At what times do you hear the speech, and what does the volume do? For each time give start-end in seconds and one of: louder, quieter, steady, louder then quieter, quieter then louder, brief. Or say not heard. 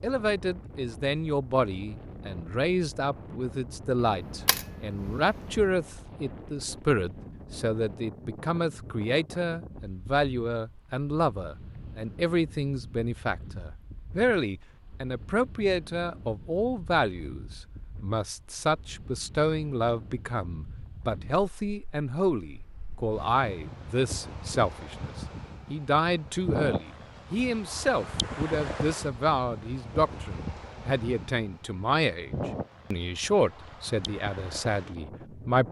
0.0-35.6 steady.